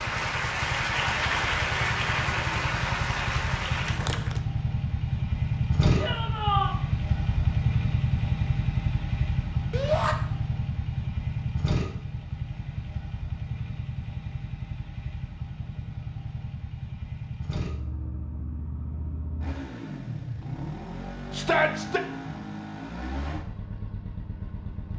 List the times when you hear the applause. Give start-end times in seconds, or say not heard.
0.0-4.4.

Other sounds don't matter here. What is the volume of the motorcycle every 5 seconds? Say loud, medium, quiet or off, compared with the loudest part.
medium, loud, medium, medium, medium.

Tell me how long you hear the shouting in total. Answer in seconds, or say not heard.
2 s.